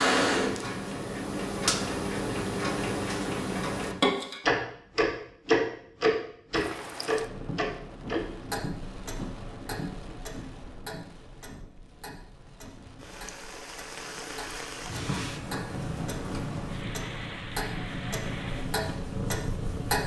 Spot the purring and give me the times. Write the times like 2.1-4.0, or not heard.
14.9-20.0.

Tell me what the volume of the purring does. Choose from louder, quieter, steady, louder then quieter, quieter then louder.
quieter then louder.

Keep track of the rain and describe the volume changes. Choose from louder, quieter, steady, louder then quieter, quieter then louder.
quieter then louder.